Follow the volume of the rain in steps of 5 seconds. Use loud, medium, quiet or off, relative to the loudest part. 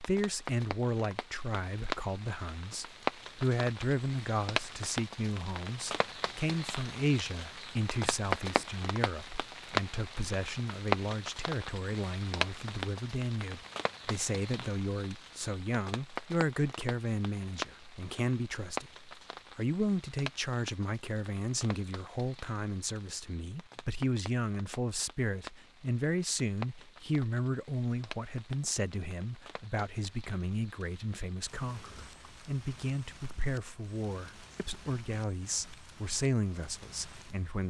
loud, loud, loud, medium, quiet, quiet, quiet, quiet.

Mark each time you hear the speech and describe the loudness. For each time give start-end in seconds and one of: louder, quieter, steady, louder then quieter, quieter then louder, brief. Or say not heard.
0.0-37.6 steady.